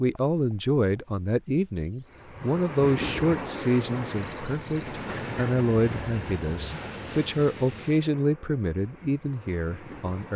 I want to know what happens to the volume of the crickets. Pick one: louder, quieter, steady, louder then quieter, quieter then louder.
louder then quieter.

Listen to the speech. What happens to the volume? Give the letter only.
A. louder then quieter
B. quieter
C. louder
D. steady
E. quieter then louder
D.